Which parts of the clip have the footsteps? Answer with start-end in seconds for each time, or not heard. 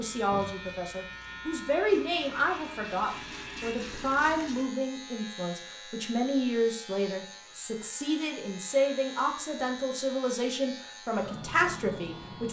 not heard.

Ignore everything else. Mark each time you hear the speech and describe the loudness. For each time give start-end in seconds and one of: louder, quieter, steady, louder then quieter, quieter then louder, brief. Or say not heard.
0.0-12.4 steady.